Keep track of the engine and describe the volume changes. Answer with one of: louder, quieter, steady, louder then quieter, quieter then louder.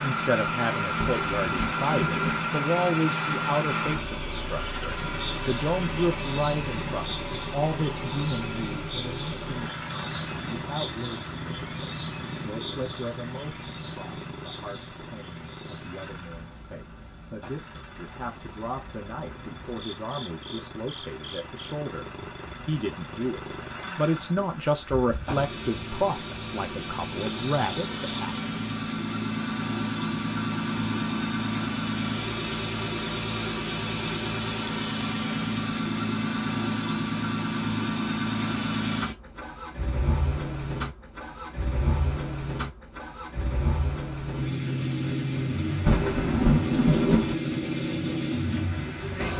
quieter then louder.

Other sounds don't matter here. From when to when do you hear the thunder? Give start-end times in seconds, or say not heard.
0.9-2.5, 45.9-47.4.